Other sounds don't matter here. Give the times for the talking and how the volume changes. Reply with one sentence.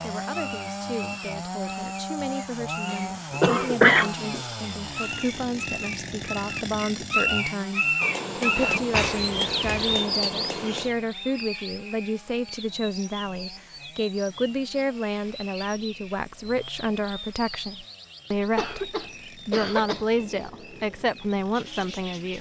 The talking can be heard from 0.0 to 22.3 s, getting louder.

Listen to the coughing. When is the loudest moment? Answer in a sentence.
The loudest moment of the coughing is at 4 seconds.